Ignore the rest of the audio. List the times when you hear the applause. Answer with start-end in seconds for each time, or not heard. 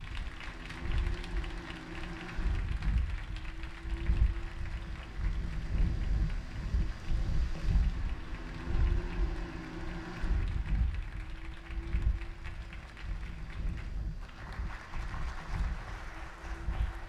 0.0-17.0.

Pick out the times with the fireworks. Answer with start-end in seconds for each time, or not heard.
not heard.